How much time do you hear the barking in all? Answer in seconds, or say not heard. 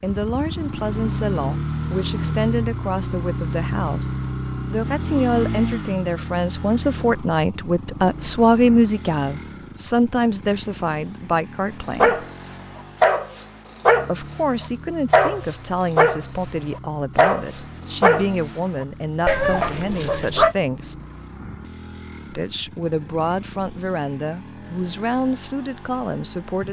6 s.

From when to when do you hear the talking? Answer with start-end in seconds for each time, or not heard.
0.0-4.1, 4.7-12.2, 14.1-21.0, 22.2-26.6.